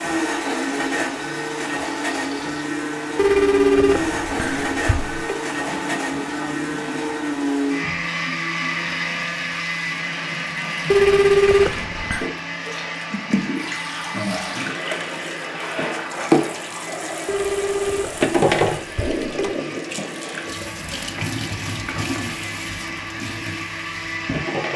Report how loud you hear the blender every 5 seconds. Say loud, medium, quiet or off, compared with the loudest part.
loud, loud, medium, quiet, medium.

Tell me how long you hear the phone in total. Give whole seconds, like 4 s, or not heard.
6 s.